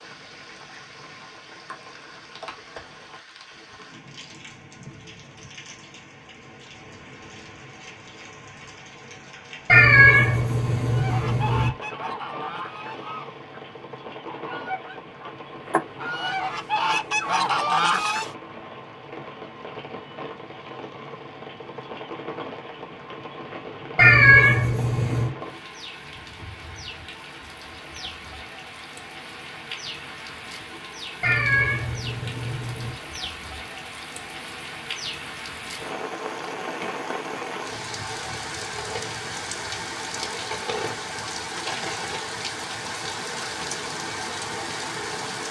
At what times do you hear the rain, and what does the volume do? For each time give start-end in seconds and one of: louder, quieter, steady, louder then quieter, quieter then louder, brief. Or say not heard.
0.0-45.4 louder.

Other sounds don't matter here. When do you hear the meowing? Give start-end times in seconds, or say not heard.
9.7-11.7, 23.9-25.3, 31.2-33.0.